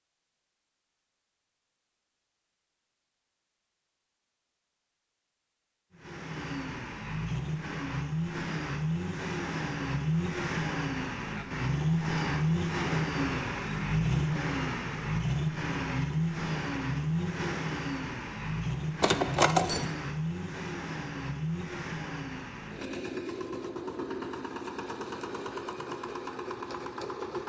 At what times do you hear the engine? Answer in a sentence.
You can hear the engine from 5.9 to 27.4 s.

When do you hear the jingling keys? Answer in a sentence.
The jingling keys can be heard from 19.0 to 19.9 s.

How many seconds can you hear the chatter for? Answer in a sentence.
You can't hear the chatter here.